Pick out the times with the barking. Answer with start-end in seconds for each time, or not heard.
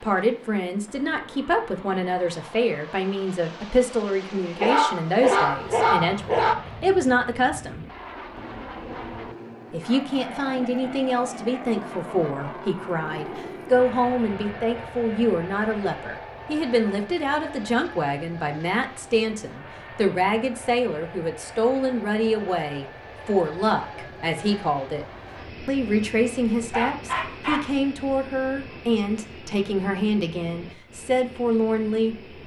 4.5-6.5, 26.7-27.7.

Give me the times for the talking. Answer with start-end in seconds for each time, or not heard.
0.0-7.8, 9.7-25.1, 25.6-32.1.